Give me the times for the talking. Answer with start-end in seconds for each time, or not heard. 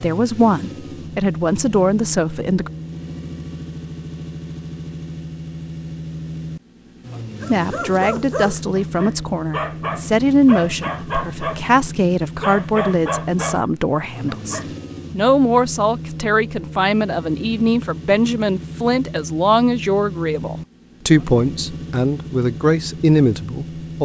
0.0-2.7, 7.5-24.0.